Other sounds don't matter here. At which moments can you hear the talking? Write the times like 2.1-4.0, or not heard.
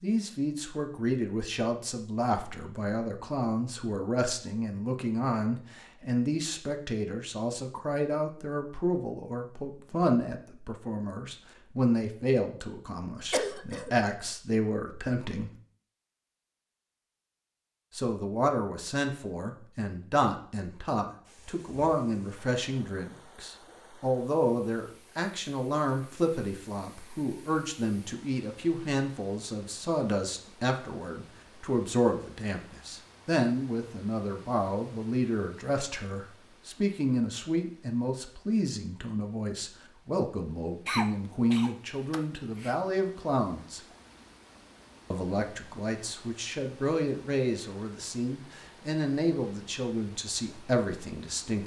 0.0-15.5, 17.9-43.8, 45.1-51.6.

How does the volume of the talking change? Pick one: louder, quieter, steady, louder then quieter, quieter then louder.
steady.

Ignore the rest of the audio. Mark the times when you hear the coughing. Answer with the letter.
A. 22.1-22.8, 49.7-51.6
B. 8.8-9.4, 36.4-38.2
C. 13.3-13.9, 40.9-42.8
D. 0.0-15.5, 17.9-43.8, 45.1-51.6
C.